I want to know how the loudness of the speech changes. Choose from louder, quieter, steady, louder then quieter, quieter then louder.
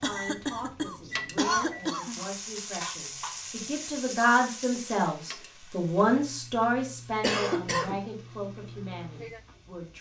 louder then quieter.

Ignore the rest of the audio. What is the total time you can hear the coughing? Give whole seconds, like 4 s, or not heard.
3 s.